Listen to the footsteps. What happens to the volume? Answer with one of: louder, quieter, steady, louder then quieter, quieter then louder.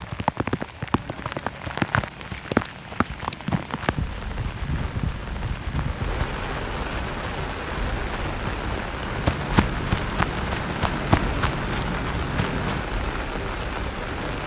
louder.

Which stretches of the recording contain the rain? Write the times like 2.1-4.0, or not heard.
0.0-14.4.